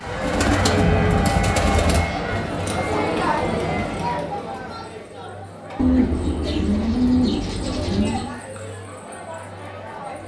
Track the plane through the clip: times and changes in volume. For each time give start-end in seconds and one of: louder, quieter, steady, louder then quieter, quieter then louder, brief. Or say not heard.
0.0-4.2 quieter.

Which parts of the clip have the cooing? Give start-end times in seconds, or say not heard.
0.2-2.0, 5.8-8.3.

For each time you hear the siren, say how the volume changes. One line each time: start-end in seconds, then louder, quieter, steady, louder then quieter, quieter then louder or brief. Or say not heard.
not heard.